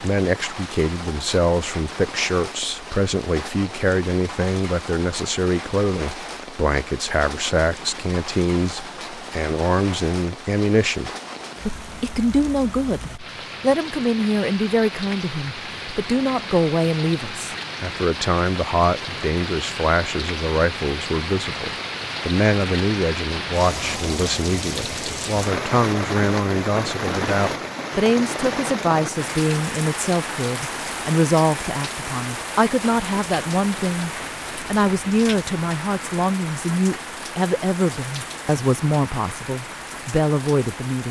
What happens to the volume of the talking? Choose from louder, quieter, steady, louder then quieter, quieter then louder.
steady.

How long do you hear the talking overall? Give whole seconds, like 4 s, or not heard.
41 s.